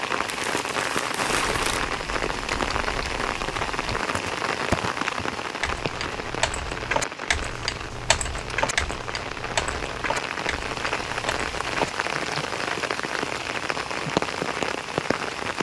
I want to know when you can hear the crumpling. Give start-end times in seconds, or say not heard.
0.2-1.8.